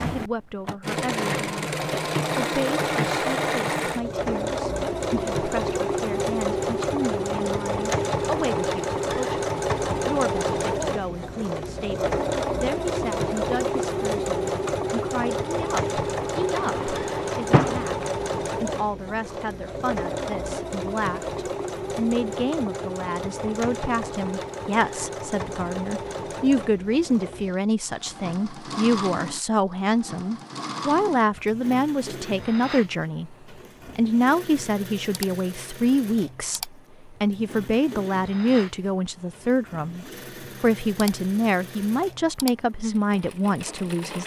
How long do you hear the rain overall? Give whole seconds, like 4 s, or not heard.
not heard.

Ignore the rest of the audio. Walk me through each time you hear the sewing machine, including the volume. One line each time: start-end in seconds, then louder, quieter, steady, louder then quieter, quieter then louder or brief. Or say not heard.
0.0-44.2 quieter.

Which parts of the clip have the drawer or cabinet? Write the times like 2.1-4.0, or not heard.
16.6-18.1.